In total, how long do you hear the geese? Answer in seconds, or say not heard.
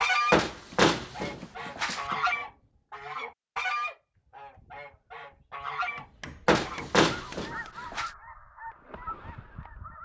10 s.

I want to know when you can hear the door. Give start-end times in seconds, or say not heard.
0.3-2.0, 6.5-8.1.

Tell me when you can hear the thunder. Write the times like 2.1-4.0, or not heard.
not heard.